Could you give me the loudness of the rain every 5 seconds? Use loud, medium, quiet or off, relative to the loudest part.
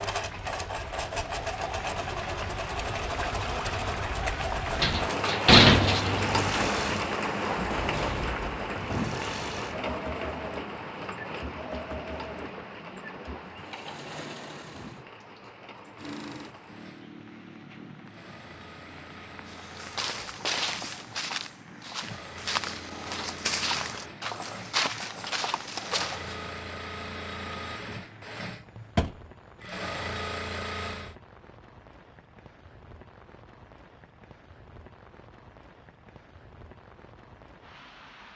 medium, loud, medium, quiet, quiet, quiet, quiet, quiet.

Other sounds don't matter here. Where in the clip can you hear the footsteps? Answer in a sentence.
You can hear the footsteps from 19.4 to 26.4 s.